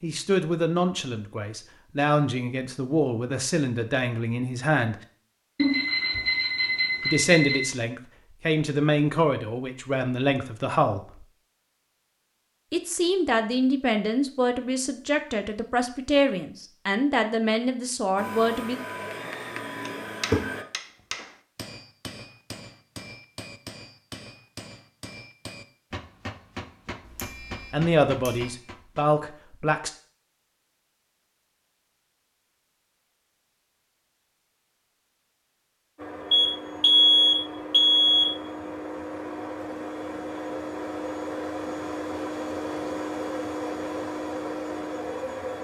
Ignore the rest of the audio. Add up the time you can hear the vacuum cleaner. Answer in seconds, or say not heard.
12 s.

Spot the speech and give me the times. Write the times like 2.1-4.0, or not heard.
0.0-5.0, 7.0-11.2, 12.7-18.8, 27.7-29.9.